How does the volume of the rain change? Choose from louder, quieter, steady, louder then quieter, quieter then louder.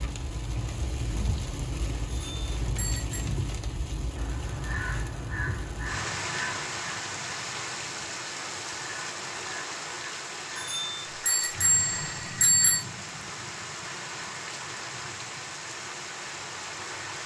steady.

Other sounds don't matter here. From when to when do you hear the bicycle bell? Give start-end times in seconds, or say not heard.
2.0-3.2, 10.6-12.8.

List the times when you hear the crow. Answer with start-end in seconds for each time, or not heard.
4.2-11.0.